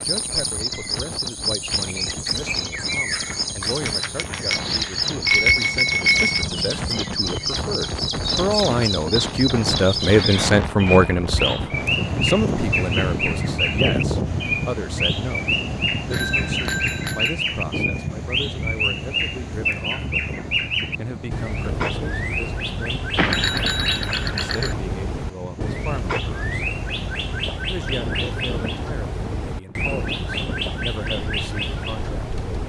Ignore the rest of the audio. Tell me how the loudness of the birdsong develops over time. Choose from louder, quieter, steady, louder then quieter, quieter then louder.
steady.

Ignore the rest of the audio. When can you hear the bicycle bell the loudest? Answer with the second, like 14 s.
5 s.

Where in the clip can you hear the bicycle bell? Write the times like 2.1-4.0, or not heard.
3.9-6.5, 16.1-17.3, 23.1-24.8.